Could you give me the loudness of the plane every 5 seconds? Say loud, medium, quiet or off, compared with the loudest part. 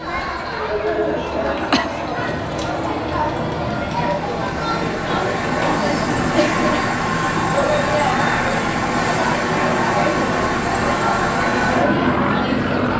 medium, loud, loud.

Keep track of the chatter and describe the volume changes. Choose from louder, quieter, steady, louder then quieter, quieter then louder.
steady.